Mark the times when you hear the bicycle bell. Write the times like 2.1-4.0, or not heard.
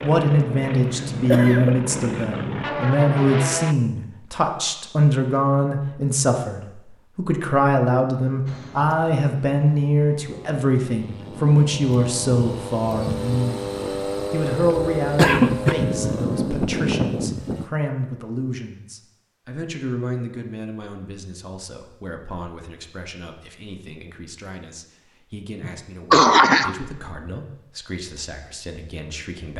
not heard.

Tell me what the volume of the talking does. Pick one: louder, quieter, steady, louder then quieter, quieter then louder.
quieter.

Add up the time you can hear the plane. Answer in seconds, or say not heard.
13 s.